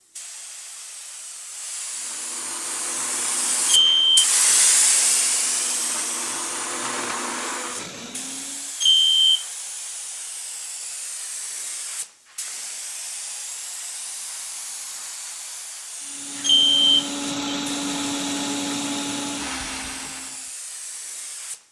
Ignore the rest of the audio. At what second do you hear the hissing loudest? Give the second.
5 s.